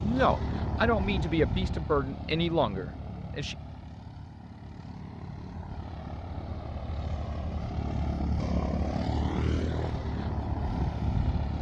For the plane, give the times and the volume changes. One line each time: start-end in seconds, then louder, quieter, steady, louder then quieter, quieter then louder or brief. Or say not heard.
0.0-11.5 quieter then louder.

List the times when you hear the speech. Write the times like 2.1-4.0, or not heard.
0.0-3.5.